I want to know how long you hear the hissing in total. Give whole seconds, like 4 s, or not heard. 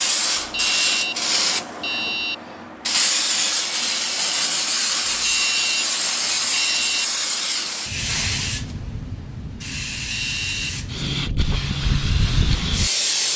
13 s.